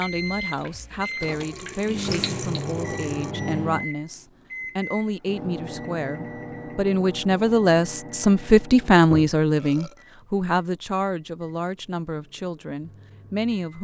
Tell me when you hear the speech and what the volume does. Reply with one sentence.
The speech can be heard from 0.0 to 13.7 s, getting louder then quieter.